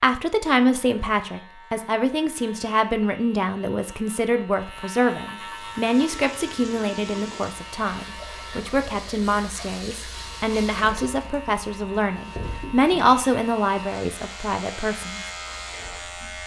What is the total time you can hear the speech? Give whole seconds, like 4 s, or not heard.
15 s.